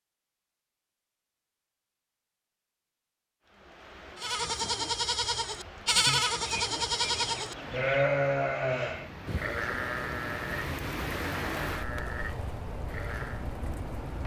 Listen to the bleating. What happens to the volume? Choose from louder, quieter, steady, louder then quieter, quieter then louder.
quieter.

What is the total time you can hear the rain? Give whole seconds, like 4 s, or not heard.
11 s.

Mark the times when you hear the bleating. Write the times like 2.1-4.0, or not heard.
4.2-13.5.